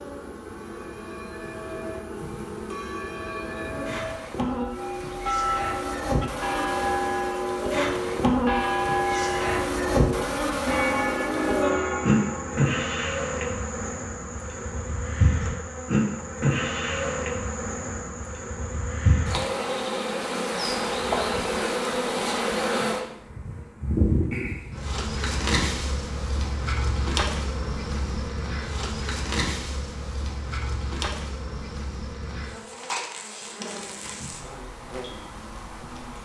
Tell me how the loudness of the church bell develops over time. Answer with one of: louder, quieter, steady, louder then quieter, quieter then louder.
louder.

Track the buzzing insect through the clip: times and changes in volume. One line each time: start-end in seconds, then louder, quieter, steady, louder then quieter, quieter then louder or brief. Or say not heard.
0.0-36.2 louder then quieter.